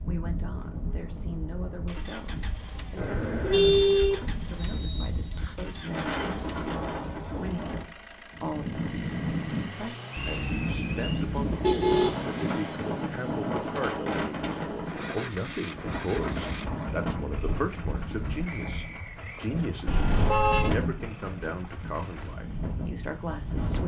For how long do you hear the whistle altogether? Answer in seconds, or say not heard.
3 s.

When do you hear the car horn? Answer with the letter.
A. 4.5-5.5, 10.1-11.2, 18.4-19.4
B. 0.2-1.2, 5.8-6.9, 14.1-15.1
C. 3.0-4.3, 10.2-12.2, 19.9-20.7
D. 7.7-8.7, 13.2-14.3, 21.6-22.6
C.